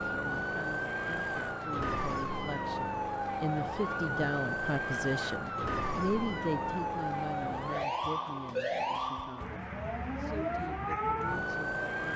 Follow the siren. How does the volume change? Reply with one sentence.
The volume of the siren stays about the same.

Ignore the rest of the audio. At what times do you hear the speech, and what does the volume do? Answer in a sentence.
You can hear the speech from 0.1 to 9.6 s, getting louder then quieter; and briefly from 10.2 to 12.1 s.